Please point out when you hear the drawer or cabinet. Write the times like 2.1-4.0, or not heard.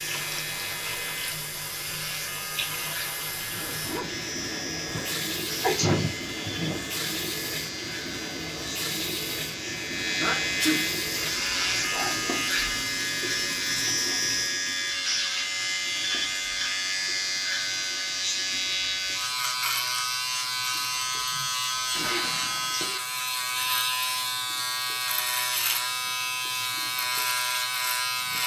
not heard.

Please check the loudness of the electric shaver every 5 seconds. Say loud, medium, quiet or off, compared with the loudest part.
medium, medium, loud, loud, loud, loud.